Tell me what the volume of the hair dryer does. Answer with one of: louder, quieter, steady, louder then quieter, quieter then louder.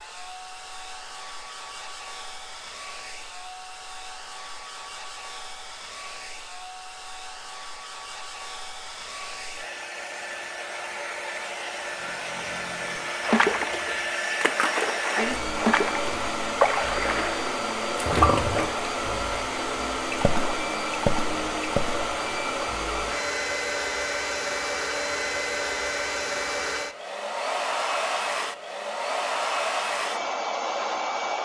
louder.